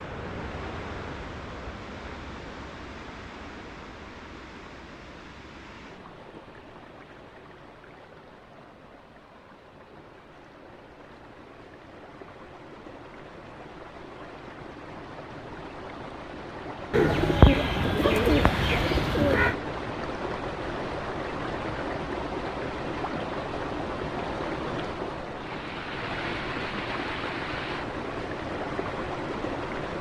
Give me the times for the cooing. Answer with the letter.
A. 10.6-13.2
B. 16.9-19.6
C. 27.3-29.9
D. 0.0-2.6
B.